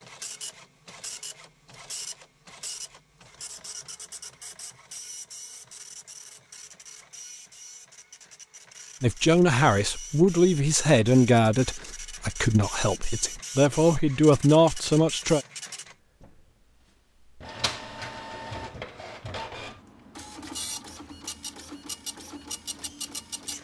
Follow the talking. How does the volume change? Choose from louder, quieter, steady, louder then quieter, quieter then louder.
quieter then louder.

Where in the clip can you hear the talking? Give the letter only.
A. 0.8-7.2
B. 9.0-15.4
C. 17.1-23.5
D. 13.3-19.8
B.